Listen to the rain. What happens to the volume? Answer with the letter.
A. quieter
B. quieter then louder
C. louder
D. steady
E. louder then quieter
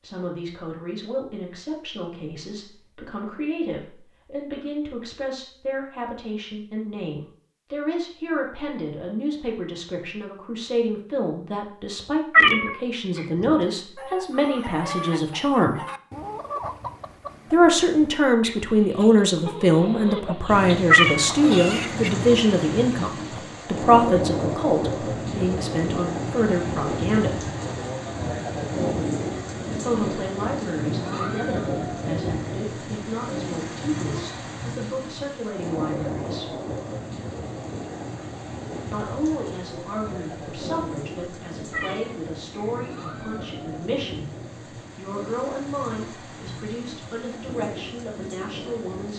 A.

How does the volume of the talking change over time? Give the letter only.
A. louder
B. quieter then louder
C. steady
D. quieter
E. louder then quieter
E.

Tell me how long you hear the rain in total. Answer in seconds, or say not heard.
29 s.